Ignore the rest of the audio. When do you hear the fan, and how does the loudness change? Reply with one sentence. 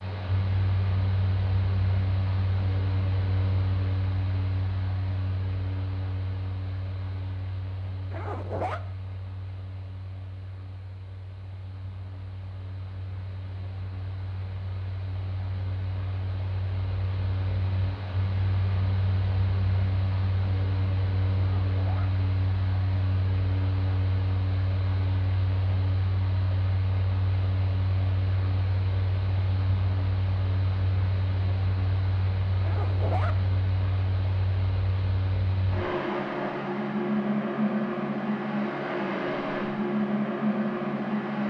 You can hear the fan from 0.0 to 41.4 s, getting quieter then louder.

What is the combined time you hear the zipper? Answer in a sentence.
You can hear the zipper for 2 seconds altogether.